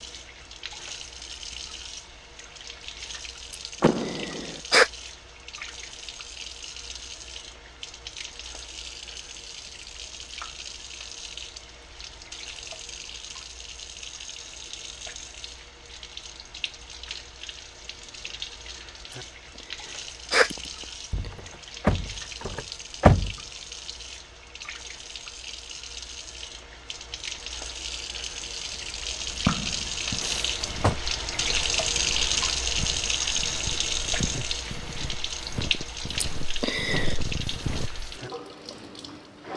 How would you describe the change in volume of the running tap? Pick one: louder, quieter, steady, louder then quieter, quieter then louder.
louder.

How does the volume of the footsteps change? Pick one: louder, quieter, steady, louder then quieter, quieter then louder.
louder.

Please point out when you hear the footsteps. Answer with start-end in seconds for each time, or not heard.
29.3-38.1.